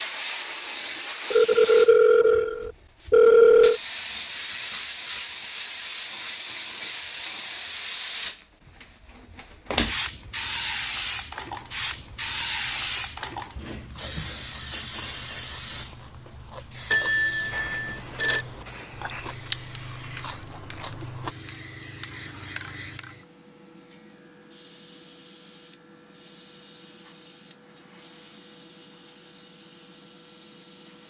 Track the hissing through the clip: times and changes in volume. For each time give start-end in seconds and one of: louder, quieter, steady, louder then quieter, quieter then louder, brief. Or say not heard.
0.0-31.0 quieter.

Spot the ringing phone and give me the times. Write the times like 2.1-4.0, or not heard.
1.3-3.8, 16.9-18.4.